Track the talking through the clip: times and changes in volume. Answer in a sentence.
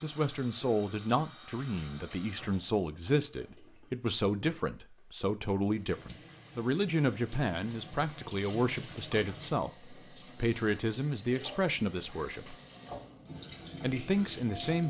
You can hear the talking from 0.0 to 12.6 s, at a steady volume; and briefly from 13.8 to 14.8 s.